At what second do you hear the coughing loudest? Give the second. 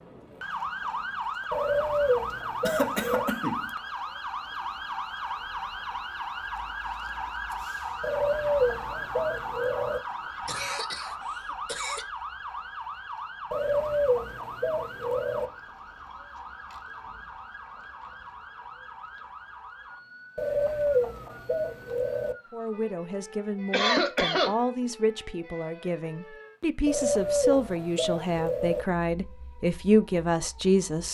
24 s.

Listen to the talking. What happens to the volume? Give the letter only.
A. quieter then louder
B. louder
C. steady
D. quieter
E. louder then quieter
B.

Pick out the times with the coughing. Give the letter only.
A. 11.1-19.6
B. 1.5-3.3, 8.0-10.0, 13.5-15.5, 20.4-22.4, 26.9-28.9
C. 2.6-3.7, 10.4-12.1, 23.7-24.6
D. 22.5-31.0
C.